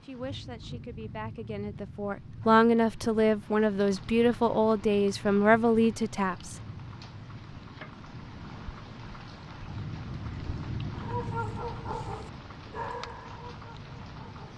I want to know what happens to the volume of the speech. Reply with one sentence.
The loudness of the speech goes up.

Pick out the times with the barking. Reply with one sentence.
The barking can be heard from 10.9 to 14.5 s.